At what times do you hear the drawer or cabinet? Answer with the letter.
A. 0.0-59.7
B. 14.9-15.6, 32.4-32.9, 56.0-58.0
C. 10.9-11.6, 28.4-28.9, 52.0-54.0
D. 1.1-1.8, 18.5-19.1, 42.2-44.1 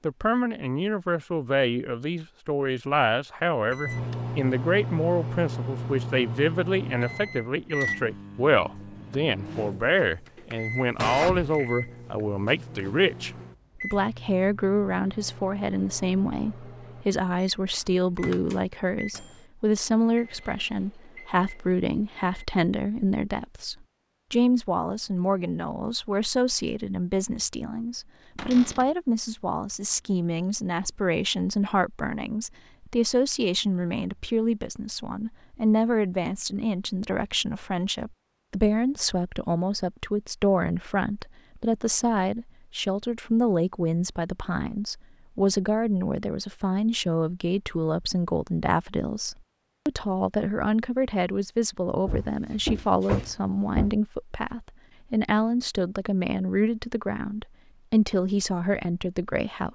C.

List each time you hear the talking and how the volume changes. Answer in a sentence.
The talking can be heard from 0.0 to 59.7 s, at a steady volume.